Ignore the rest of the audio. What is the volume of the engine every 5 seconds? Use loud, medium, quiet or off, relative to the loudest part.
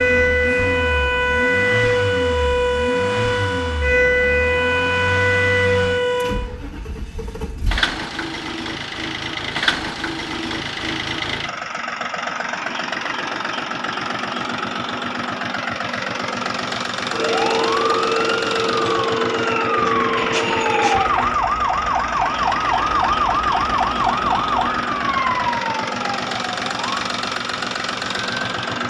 medium, loud, loud, loud, loud, loud.